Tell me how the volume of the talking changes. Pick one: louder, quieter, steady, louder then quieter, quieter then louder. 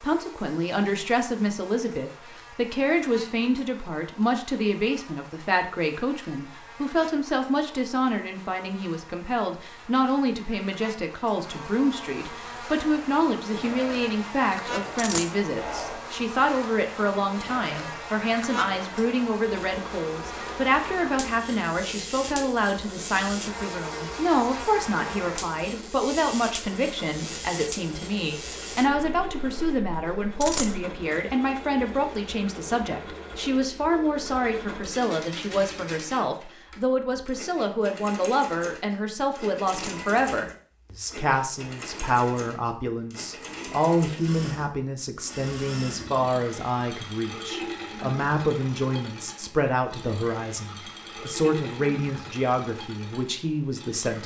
steady.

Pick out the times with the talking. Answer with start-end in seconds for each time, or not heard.
0.0-54.2.